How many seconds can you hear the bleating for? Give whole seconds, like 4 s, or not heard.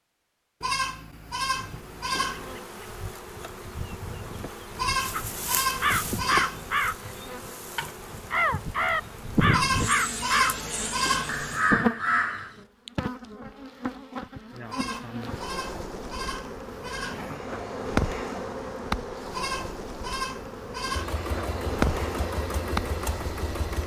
11 s.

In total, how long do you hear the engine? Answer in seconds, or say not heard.
3 s.